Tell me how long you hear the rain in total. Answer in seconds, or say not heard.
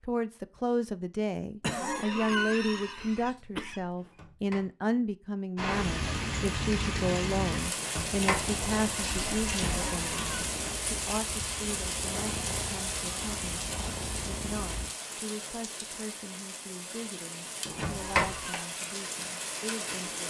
15 s.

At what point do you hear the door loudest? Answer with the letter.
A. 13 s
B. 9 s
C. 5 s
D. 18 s
D.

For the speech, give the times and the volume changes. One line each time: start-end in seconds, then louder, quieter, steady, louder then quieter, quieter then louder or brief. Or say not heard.
0.0-20.2 quieter.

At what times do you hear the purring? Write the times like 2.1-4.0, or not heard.
8.0-14.9.